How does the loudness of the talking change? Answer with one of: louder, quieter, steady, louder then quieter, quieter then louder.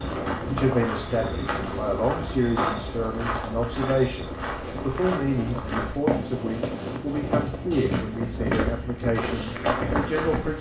steady.